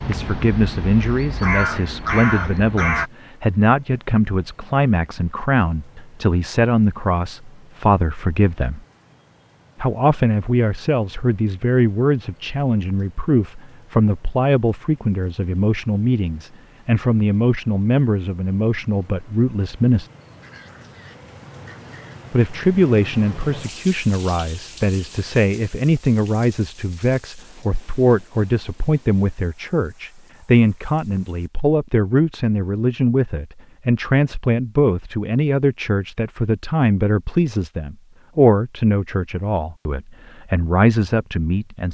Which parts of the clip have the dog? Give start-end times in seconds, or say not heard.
20.4-22.2.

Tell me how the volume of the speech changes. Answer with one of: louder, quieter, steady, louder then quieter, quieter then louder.
steady.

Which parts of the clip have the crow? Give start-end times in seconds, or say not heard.
0.0-3.1.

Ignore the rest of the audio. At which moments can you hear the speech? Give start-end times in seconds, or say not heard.
0.1-8.8, 9.8-20.1, 22.3-41.8.